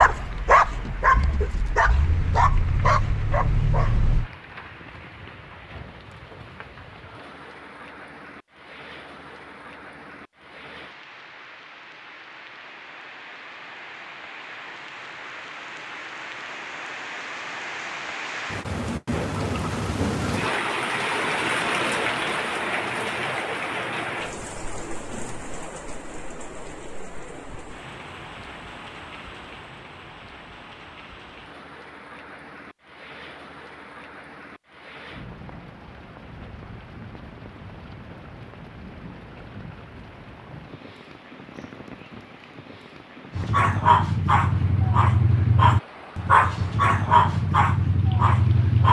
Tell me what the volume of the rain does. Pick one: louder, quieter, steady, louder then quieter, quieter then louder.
louder then quieter.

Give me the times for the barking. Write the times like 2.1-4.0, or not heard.
0.0-4.3, 43.4-48.8.